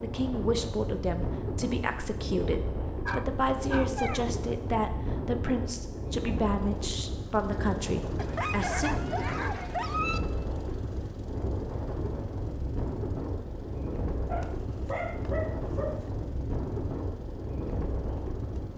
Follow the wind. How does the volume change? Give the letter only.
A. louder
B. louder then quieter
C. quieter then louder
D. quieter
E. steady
E.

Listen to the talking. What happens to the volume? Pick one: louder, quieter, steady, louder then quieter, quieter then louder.
steady.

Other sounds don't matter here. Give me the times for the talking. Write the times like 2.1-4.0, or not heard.
0.0-8.9.